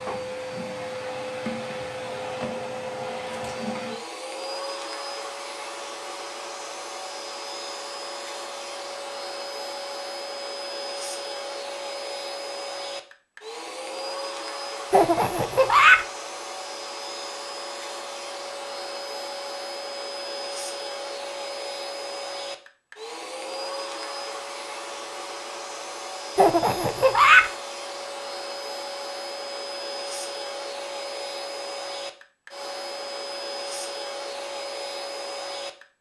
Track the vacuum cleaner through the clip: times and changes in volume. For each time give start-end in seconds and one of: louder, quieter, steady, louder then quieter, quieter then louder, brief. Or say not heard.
0.0-35.9 steady.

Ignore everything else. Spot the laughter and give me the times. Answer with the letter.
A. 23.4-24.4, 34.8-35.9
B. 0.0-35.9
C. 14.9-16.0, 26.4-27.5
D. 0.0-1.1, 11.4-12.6
C.